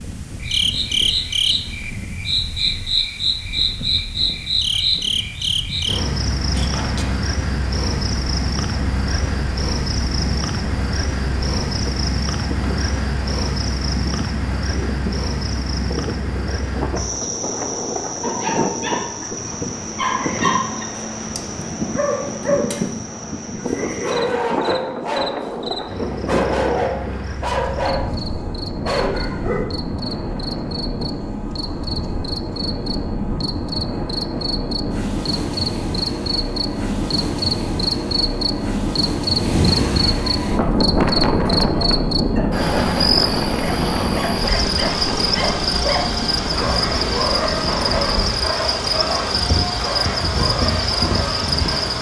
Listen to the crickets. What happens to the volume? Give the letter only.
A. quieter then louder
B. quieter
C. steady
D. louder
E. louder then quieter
A.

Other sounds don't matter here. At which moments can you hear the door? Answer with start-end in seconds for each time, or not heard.
6.5-7.2.